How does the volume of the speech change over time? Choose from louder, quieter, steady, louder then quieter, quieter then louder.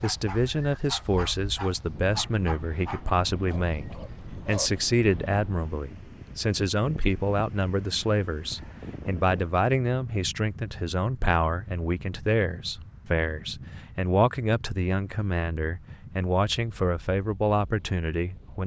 steady.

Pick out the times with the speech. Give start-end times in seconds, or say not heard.
0.0-18.6.